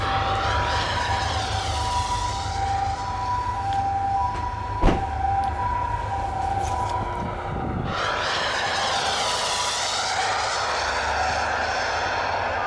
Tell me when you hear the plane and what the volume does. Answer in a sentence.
You can hear the plane from 0.0 to 12.6 s, getting quieter then louder.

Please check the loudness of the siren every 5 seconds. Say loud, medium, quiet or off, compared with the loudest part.
loud, loud, medium.